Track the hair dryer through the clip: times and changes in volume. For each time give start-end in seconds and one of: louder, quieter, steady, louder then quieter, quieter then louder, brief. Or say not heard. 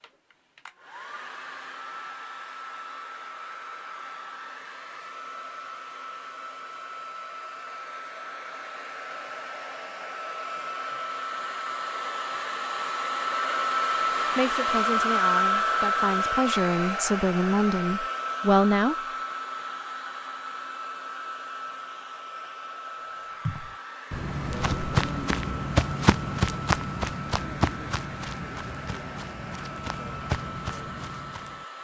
0.0-31.7 louder then quieter.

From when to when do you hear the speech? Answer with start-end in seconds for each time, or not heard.
14.3-18.9.